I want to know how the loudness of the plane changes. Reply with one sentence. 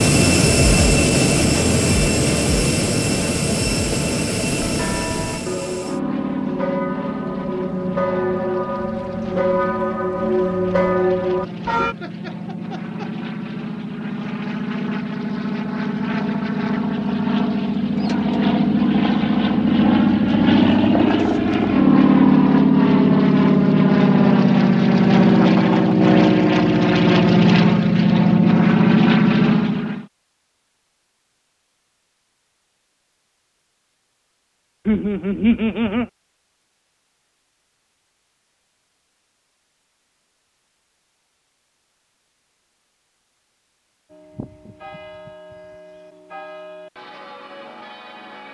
The loudness of the plane goes down, then up.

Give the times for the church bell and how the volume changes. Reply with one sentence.
You can hear the church bell from 4.7 to 11.9 s, getting louder; and from 44.1 to 48.4 s, at a steady volume.